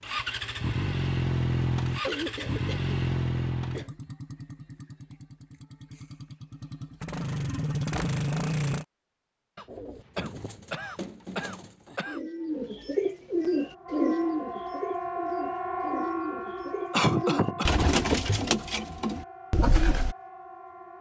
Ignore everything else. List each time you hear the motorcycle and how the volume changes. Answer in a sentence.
The motorcycle can be heard from 0.0 to 8.8 s, getting quieter then louder.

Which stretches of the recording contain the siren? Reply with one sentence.
The siren can be heard from 13.3 to 20.9 s.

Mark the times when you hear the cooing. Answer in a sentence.
The cooing can be heard from 9.7 to 20.1 s.